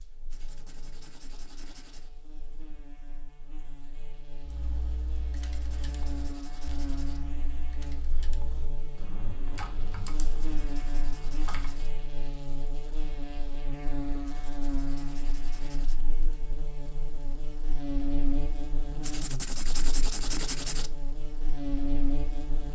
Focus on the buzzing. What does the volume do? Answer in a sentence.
The loudness of the buzzing goes up.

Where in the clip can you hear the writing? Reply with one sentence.
You can hear the writing from 0.3 to 2.1 s, from 5.3 to 7.2 s, from 10.2 to 11.9 s, from 14.2 to 15.9 s and from 19.0 to 20.9 s.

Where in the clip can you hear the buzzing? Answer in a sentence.
The buzzing can be heard from 0.0 to 22.7 s.